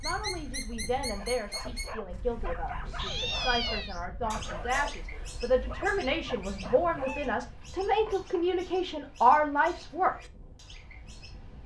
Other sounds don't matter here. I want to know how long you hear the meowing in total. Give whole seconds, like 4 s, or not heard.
2 s.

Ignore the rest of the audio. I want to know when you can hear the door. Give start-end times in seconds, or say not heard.
not heard.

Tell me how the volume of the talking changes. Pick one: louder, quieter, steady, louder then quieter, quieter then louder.
louder.